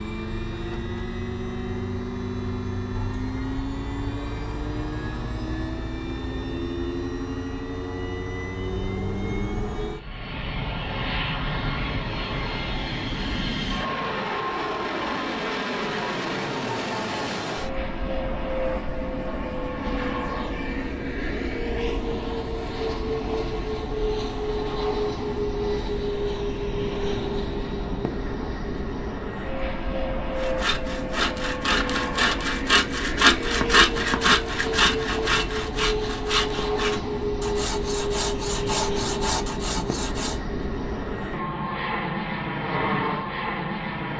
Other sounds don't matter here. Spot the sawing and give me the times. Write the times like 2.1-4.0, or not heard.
30.4-40.4.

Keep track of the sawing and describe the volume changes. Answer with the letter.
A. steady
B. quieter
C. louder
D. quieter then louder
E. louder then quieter
E.